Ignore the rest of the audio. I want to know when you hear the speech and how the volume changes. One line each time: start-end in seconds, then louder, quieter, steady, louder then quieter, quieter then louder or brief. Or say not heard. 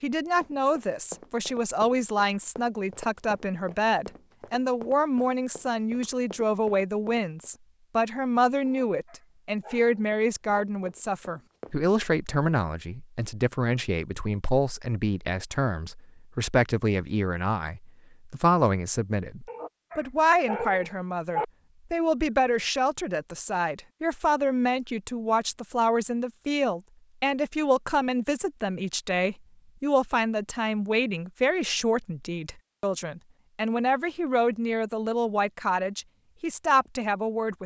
0.0-37.6 steady.